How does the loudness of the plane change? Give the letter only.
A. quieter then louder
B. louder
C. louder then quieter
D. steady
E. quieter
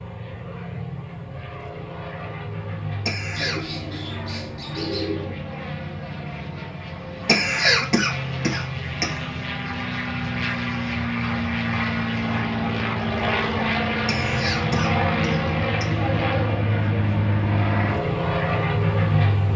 B.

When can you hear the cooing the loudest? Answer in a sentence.
The loudest moment of the cooing is at 5 seconds.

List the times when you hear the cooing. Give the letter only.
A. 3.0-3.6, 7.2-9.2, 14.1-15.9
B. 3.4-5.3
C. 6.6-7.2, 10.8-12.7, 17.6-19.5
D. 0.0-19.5
B.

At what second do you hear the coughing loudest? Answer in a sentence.
The volume of the coughing peaks at 8 seconds.